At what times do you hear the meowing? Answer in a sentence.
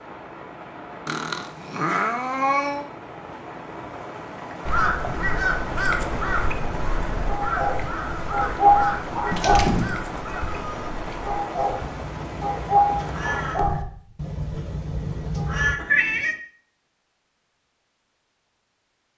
You can hear the meowing from 1.1 to 2.9 s, from 9.3 to 10.9 s and from 15.8 to 16.4 s.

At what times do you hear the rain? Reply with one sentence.
You can hear the rain from 0.0 to 13.6 s.